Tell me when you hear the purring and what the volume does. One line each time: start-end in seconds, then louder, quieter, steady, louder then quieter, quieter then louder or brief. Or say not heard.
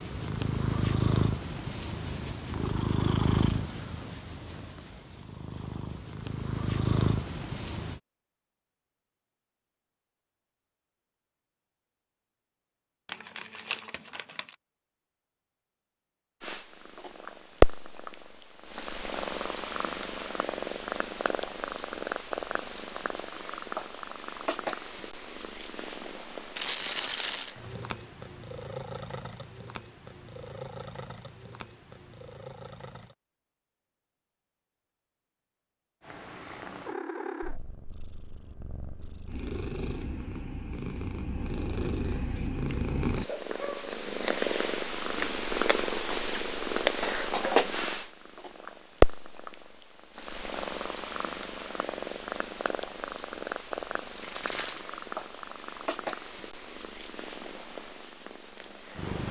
0.0-8.0 quieter then louder
16.4-33.1 quieter
36.0-59.2 louder then quieter.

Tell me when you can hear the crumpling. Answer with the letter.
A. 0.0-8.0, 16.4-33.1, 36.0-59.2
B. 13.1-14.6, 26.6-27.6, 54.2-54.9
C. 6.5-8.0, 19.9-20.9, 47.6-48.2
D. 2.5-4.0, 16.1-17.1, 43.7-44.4
B.